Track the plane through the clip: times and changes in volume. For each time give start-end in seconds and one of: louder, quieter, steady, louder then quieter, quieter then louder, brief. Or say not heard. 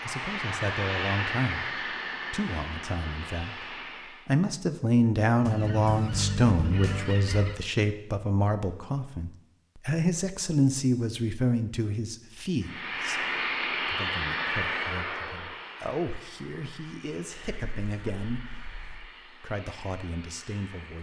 0.0-4.3 quieter
12.6-20.9 quieter.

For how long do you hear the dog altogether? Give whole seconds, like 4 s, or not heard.
not heard.